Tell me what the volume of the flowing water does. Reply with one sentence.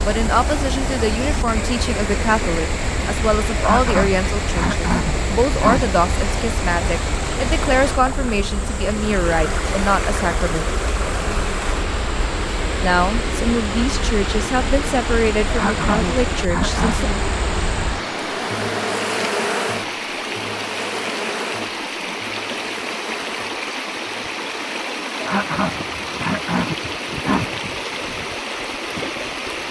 The loudness of the flowing water stays about the same.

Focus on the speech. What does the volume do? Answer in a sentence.
The volume of the speech stays about the same.